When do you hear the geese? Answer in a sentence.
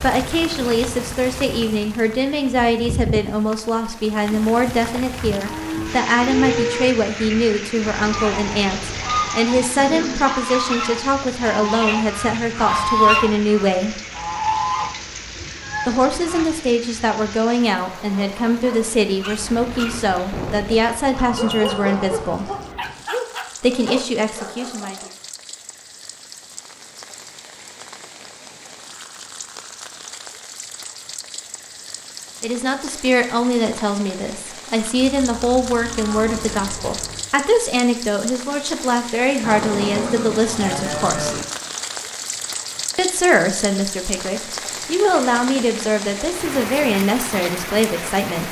The geese can be heard from 8.1 to 16.7 s.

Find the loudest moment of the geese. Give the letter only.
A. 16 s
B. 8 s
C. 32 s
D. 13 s
D.